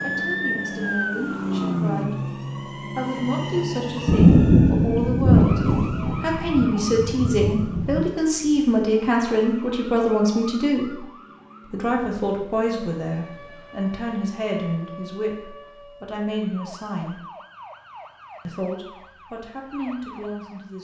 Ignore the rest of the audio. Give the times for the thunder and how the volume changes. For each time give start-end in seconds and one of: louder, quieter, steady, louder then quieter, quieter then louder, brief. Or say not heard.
4.0-8.1 quieter.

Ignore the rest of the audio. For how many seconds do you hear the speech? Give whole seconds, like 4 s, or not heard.
19 s.